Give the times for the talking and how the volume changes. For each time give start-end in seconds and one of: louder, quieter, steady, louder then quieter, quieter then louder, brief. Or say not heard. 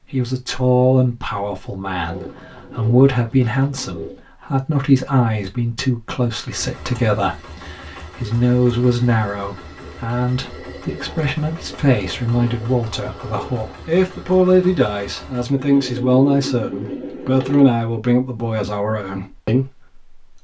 0.1-20.1 steady.